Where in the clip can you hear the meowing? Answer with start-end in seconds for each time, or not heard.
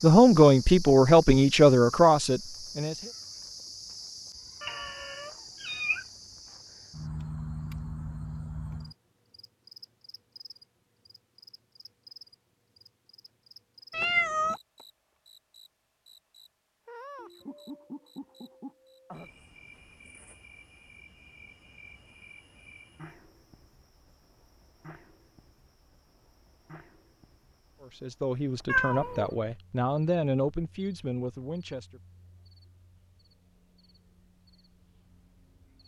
4.6-6.0, 13.9-14.6, 28.6-29.3.